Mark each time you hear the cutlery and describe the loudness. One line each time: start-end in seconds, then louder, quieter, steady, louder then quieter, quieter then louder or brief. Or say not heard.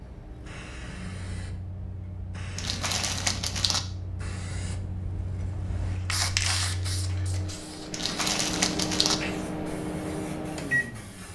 not heard.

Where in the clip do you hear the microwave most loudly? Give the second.
10 s.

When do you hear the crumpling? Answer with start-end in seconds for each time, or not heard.
2.5-3.8, 7.9-9.2.